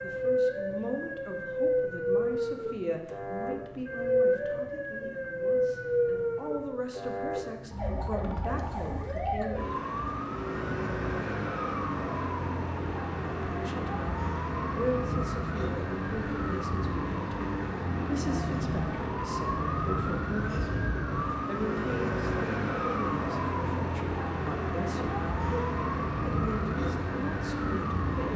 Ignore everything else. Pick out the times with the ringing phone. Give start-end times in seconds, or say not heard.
not heard.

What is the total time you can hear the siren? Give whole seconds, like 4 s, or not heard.
28 s.